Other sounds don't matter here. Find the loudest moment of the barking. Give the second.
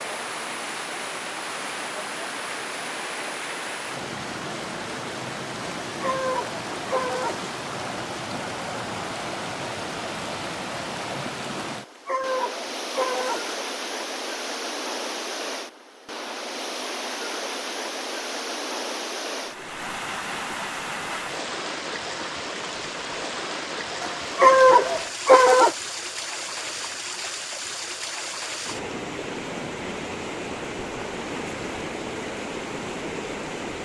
25 s.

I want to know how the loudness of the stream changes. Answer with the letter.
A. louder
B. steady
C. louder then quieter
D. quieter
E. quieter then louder
B.